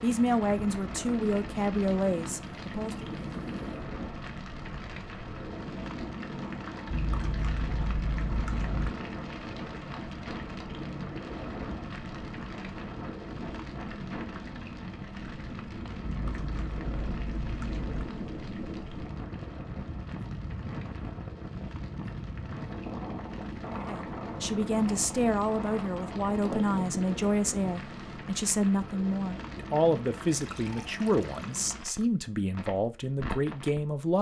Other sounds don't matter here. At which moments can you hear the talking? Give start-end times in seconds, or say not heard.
0.0-3.0, 23.7-34.1.